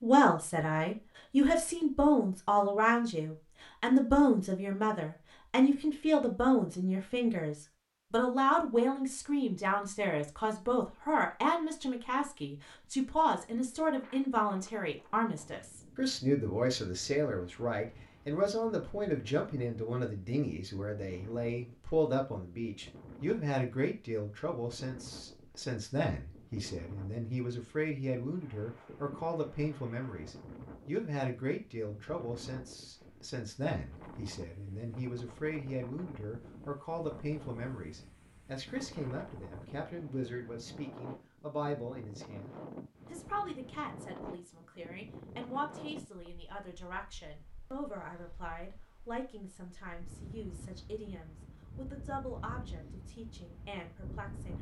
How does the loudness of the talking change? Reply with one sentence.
The loudness of the talking goes down.